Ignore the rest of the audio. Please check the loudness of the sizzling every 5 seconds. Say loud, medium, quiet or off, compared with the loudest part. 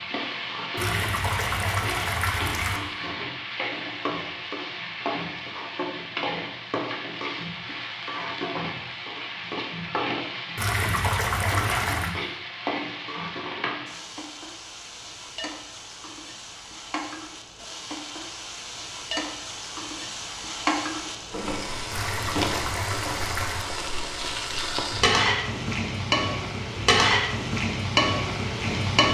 medium, medium, medium, quiet, medium, loud.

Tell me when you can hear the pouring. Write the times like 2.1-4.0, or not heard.
0.8-2.8, 10.6-12.1, 21.9-23.6.